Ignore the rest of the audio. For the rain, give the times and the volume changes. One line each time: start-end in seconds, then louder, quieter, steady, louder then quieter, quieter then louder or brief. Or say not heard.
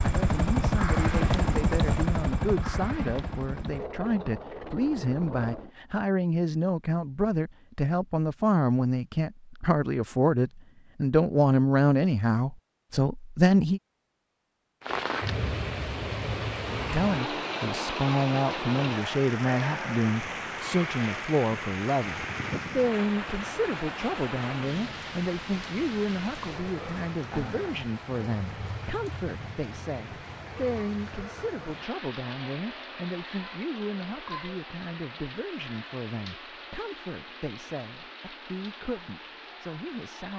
14.8-40.3 quieter.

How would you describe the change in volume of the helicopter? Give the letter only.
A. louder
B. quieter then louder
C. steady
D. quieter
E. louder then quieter
D.